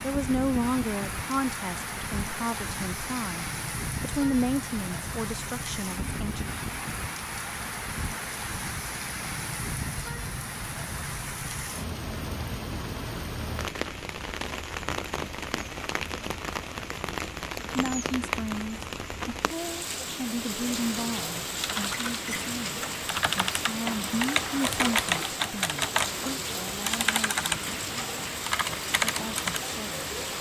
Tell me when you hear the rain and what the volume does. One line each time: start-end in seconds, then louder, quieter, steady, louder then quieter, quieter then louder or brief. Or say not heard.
0.0-30.3 steady.